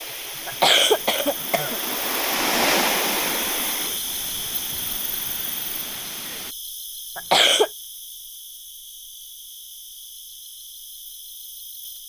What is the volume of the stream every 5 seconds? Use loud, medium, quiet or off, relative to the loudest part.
loud, medium, off.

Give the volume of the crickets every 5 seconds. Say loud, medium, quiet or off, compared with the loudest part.
loud, medium, medium.